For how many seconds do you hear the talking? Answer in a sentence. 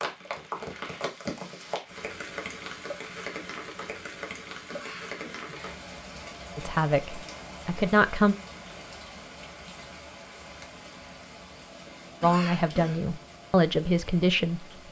You can hear the talking for 4 seconds altogether.